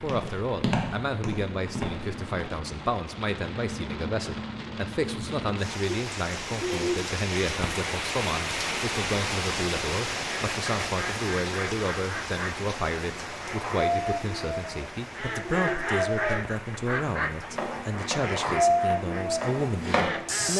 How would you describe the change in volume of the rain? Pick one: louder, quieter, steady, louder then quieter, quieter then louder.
louder then quieter.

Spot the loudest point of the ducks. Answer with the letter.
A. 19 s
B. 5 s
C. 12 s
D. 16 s
A.